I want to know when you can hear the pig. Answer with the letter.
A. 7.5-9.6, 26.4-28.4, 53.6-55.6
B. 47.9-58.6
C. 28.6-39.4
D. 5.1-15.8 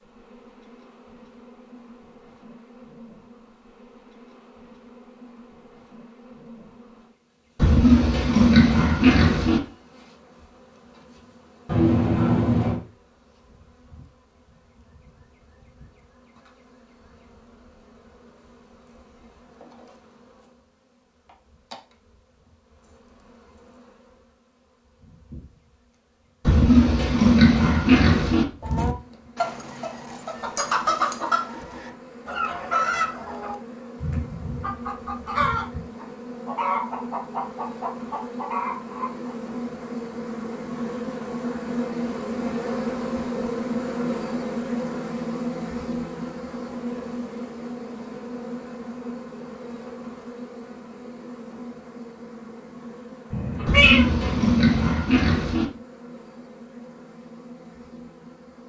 A.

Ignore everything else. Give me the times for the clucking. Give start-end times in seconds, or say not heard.
28.6-39.4.